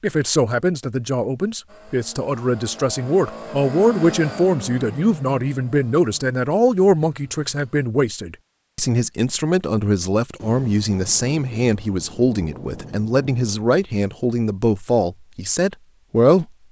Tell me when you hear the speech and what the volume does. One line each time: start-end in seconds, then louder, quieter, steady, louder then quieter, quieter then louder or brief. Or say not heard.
0.0-16.4 steady.